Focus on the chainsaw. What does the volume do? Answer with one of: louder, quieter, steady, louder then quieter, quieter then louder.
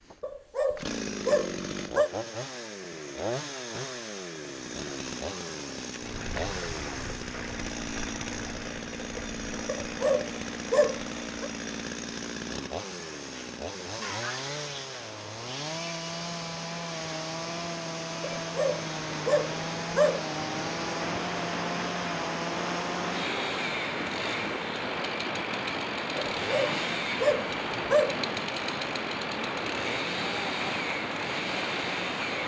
steady.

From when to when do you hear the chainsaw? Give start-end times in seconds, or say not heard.
0.0-32.4.